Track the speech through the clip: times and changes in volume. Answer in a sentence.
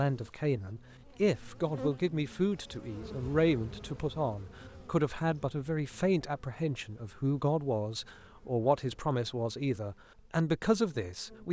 The speech can be heard from 0.0 to 11.4 s, at a steady volume.